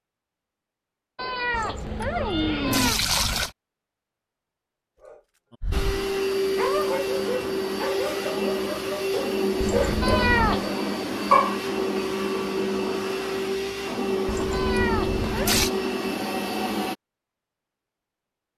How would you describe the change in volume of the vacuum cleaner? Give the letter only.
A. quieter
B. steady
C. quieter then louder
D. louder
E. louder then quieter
B.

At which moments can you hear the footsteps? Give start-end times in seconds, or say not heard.
not heard.